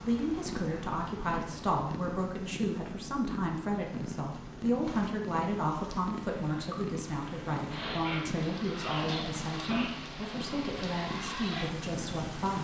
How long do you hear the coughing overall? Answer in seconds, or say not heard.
2 s.